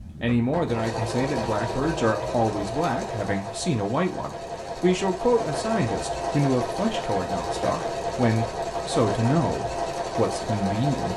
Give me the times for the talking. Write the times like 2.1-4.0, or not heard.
0.2-11.1.